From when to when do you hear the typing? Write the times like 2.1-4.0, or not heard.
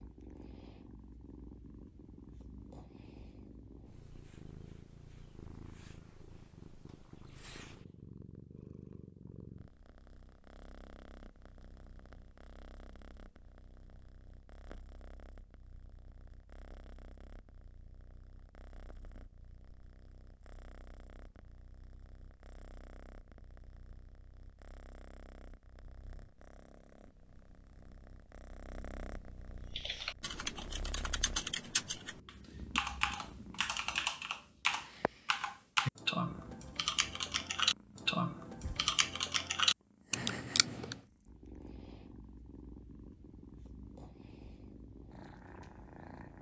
29.7-41.0.